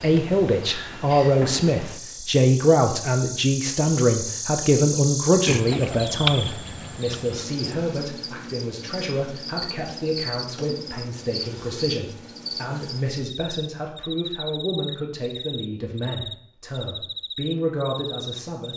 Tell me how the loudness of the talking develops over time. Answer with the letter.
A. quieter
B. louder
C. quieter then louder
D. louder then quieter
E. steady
A.